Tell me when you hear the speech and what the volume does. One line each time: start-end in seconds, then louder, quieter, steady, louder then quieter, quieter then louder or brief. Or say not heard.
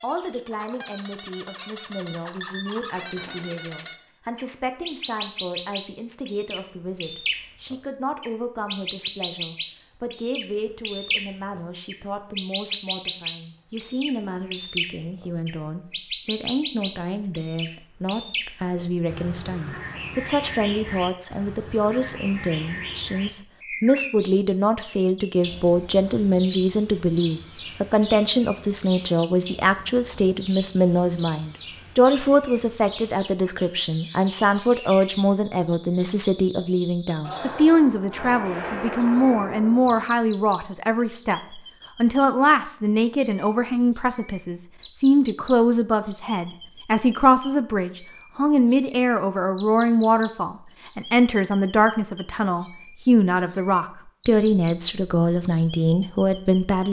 0.0-56.8 louder.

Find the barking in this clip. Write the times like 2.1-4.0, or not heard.
not heard.